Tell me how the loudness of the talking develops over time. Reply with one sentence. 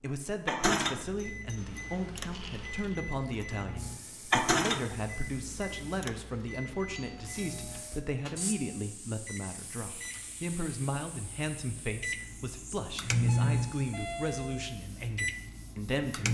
The volume of the talking stays about the same.